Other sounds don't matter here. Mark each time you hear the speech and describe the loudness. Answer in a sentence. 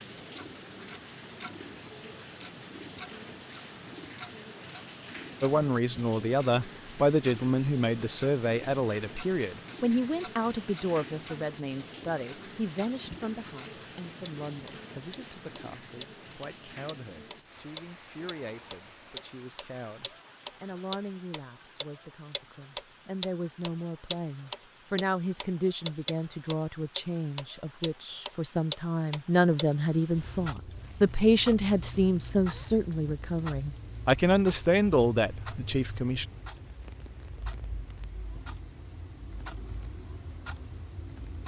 The speech can be heard from 5.4 to 36.2 s, getting quieter then louder.